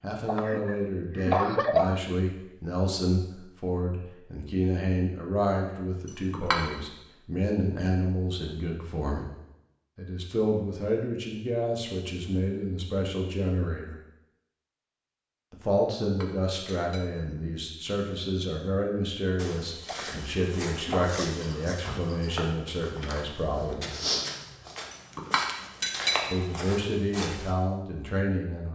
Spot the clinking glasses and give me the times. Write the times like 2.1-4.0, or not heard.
6.0-6.6, 16.0-17.1, 24.9-26.2.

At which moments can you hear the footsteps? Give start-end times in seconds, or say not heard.
19.4-27.5.